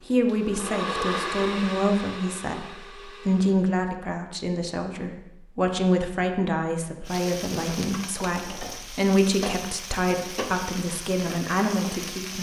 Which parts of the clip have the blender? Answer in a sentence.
You can hear the blender from 0.1 to 3.8 s.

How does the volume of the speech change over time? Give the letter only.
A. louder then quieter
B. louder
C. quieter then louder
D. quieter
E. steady
E.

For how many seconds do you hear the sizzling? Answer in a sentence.
The sizzling can be heard for 5 seconds in total.